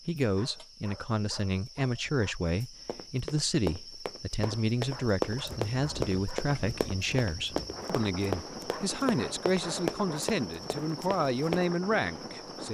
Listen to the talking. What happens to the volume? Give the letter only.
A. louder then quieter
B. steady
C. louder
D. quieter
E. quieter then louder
B.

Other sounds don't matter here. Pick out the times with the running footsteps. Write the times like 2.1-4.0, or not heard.
2.9-11.7.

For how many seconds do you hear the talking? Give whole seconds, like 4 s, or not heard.
13 s.